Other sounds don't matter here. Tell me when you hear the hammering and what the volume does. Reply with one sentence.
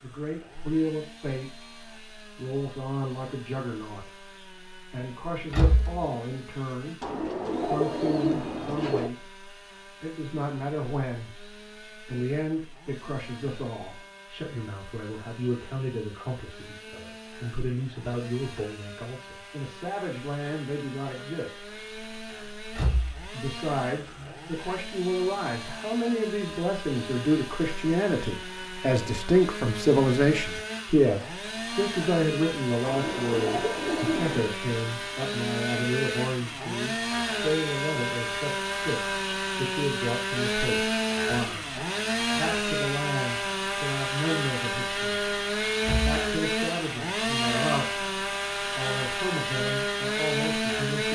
You can't hear the hammering here.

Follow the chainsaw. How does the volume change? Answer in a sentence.
The loudness of the chainsaw goes up.